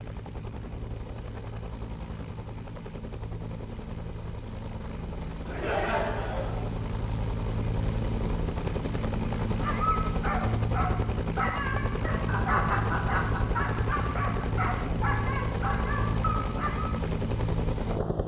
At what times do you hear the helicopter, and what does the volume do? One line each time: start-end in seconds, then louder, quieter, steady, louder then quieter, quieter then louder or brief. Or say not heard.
0.0-18.2 louder.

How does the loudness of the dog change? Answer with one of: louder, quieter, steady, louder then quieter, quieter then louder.
steady.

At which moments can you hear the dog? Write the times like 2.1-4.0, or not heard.
9.6-16.9.